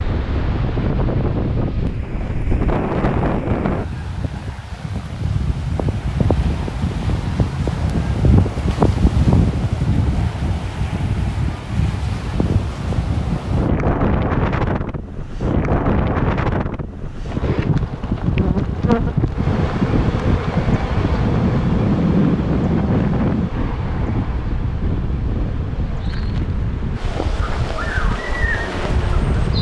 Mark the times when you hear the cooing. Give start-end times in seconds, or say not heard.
not heard.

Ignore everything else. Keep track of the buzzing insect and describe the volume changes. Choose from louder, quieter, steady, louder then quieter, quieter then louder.
quieter then louder.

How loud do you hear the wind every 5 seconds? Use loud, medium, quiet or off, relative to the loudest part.
loud, loud, loud, loud, loud, medium.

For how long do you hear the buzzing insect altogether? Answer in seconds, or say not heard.
12 s.